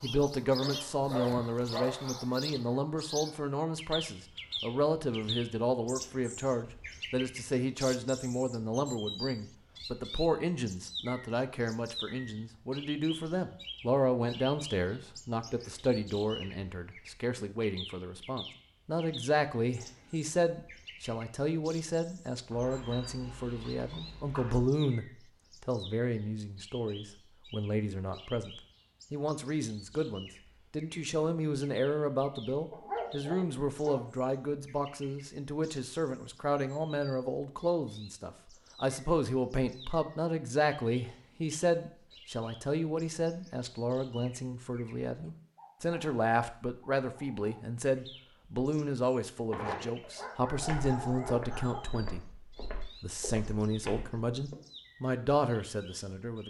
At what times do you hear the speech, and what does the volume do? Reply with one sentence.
The speech can be heard from 0.0 to 56.4 s, at a steady volume.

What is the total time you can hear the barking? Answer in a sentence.
The barking can be heard for 7 seconds in total.